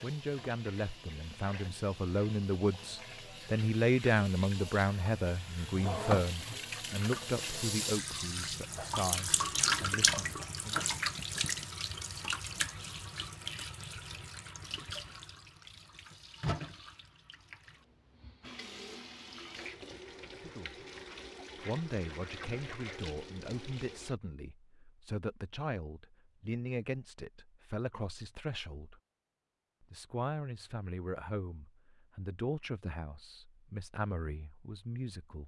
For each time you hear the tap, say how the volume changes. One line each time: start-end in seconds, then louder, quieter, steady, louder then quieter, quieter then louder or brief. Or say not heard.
0.0-24.1 louder then quieter.